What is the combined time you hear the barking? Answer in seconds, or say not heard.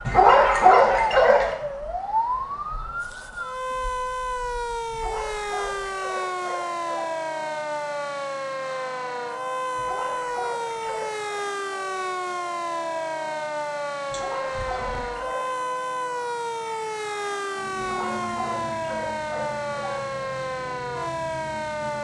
9 s.